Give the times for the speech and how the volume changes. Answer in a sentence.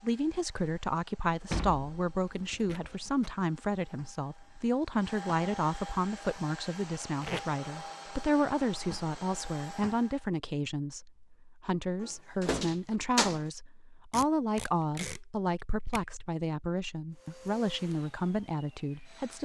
You can hear the speech from 0.0 to 19.4 s, at a steady volume.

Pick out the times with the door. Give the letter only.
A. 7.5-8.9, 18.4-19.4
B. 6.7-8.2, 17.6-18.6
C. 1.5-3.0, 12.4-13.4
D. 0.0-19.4
C.